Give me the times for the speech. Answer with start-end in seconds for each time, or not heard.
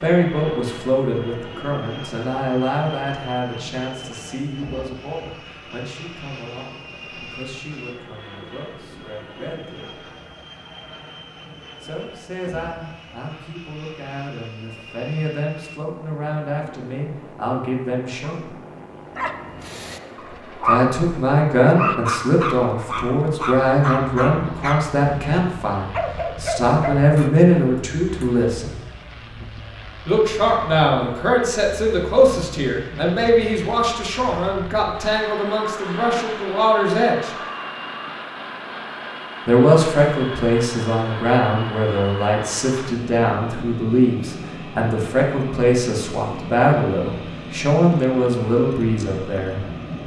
0.0-10.1, 11.8-18.4, 20.6-28.8, 30.1-37.4, 39.5-49.6.